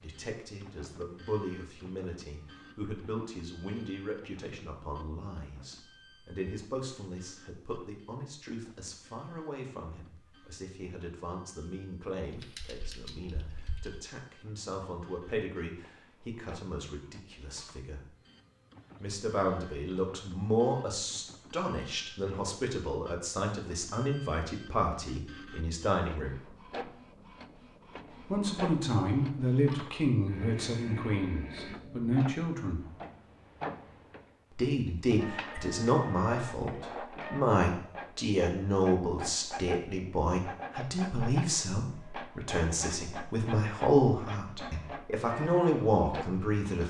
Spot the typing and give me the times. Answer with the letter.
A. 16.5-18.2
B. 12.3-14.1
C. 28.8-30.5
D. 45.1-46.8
B.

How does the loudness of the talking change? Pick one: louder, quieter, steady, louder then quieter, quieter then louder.
louder.